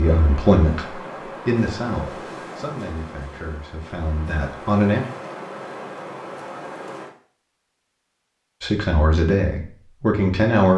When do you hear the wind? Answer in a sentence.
You can hear the wind from 0.0 to 7.1 s.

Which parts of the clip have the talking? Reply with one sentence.
The talking can be heard from 0.0 to 5.0 s and from 8.6 to 10.7 s.